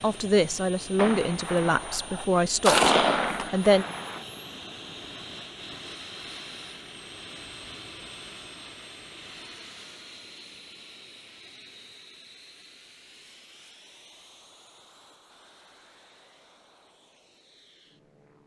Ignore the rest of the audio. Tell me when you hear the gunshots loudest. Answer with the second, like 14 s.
3 s.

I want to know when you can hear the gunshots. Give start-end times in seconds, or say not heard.
0.9-4.2.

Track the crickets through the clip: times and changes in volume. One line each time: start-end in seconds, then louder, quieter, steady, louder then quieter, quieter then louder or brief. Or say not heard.
not heard.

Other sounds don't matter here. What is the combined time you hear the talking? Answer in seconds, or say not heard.
4 s.